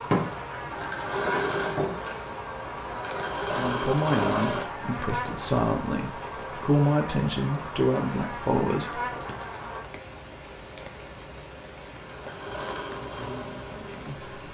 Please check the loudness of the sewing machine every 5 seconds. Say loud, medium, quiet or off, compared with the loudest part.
loud, off, medium.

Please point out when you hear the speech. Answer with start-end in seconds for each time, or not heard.
3.5-9.1, 13.0-14.3.